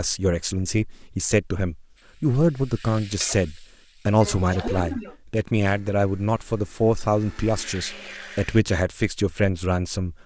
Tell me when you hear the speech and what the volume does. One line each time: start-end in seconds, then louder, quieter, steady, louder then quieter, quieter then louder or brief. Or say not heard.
0.0-10.2 steady.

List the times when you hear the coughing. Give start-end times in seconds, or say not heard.
4.2-5.2.